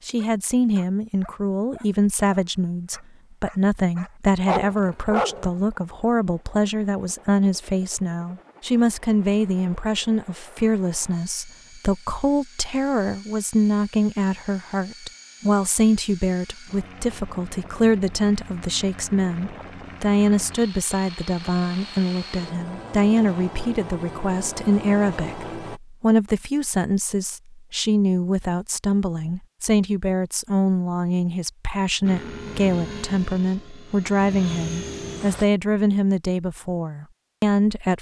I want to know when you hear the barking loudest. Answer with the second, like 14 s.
5 s.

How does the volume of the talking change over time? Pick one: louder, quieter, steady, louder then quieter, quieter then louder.
steady.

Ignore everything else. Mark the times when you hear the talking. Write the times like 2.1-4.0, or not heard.
0.1-37.9.